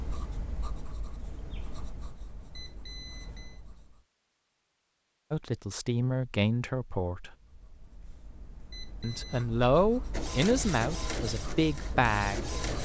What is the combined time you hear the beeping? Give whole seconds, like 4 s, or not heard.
2 s.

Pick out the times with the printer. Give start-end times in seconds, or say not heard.
10.1-12.8.